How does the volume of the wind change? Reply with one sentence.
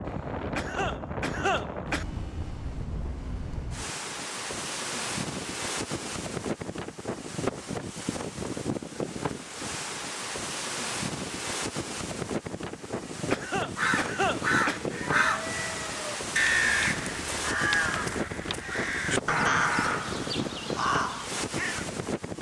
The loudness of the wind stays about the same.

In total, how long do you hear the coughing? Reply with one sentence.
The coughing can be heard for 4 seconds in total.